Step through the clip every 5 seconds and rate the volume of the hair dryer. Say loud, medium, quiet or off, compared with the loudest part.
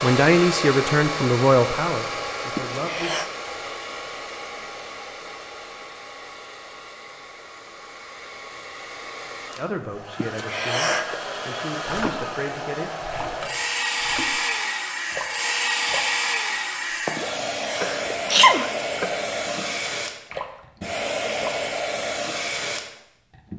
loud, quiet, loud, loud, loud.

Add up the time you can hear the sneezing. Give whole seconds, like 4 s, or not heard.
3 s.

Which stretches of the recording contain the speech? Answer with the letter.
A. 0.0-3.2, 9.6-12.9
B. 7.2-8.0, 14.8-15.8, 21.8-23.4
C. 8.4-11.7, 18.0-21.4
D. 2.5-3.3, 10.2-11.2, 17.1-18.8
A.